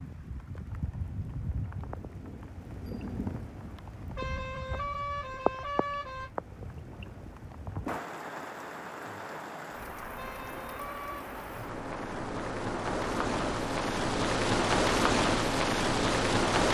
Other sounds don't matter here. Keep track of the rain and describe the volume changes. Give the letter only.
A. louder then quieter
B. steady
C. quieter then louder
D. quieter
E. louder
E.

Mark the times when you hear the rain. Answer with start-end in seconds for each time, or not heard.
0.0-16.6.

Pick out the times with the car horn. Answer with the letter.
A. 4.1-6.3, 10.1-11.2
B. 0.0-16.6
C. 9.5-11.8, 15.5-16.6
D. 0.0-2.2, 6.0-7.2
A.